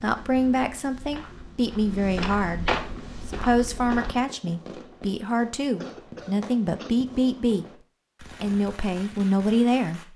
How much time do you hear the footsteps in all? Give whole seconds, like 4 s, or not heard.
4 s.